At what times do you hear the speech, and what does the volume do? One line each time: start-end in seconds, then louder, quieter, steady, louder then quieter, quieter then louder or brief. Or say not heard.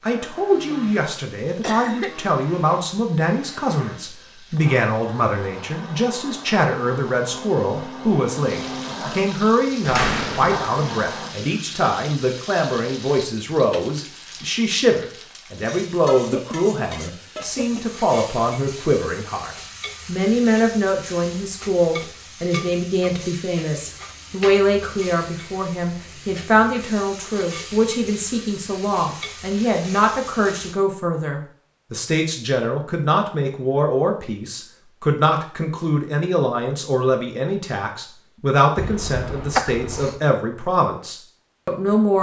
0.0-42.1 steady.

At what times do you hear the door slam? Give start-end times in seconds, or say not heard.
9.8-10.6.